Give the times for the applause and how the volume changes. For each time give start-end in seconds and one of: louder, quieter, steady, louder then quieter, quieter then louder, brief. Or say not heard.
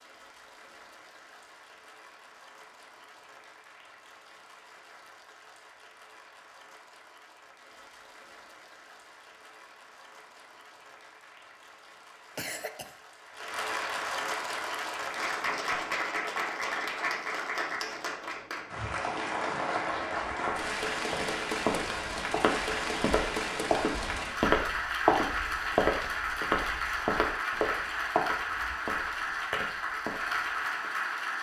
0.0-31.3 louder.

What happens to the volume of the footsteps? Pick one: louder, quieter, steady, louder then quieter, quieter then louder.
louder then quieter.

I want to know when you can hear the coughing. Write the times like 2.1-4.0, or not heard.
12.3-12.9.